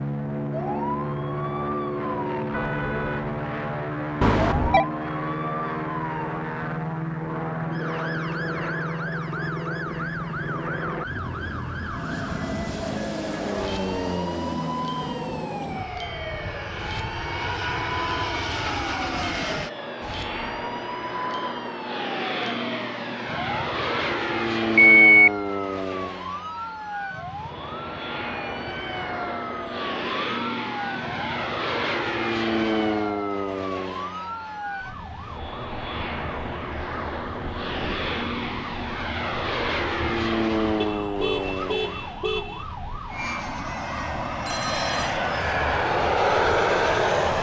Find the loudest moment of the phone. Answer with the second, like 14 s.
25 s.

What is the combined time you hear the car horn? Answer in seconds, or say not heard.
3 s.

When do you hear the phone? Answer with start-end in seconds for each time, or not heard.
4.2-4.8, 24.8-25.3, 44.5-45.1.